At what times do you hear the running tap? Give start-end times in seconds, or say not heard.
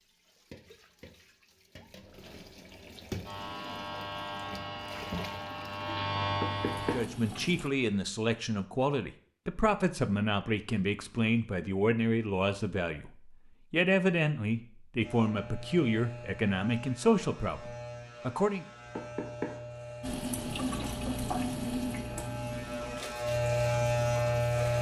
0.0-7.7, 20.0-24.7.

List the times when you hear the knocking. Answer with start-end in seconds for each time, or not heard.
6.4-7.0, 18.9-19.6.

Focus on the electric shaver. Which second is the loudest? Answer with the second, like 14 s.
24 s.